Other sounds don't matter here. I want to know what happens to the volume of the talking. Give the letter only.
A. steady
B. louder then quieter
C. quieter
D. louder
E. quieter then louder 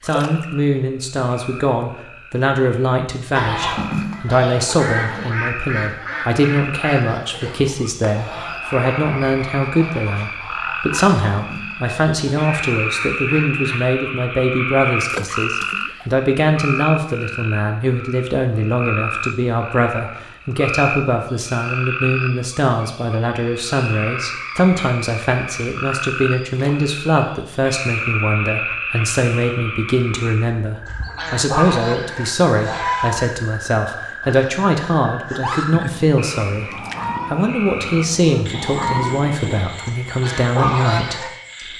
A.